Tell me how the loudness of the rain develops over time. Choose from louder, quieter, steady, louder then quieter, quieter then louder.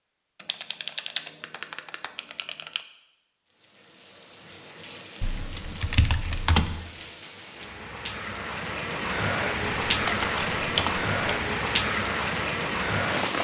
louder.